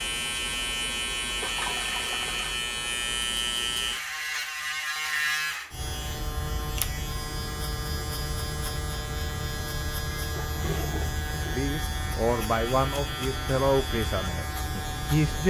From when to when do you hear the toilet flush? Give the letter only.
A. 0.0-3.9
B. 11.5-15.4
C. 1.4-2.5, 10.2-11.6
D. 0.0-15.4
C.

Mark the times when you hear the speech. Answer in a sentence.
The speech can be heard from 11.5 to 15.4 s.